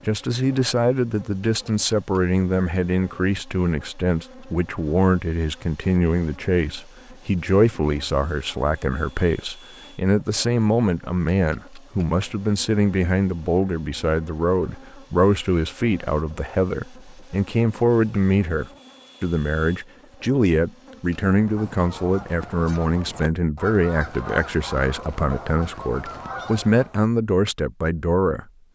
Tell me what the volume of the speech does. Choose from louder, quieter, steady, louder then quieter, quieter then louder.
steady.